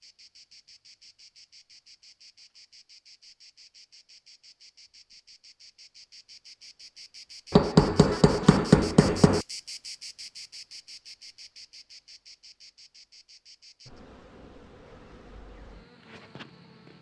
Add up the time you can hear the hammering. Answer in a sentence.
You can hear the hammering for 2 seconds altogether.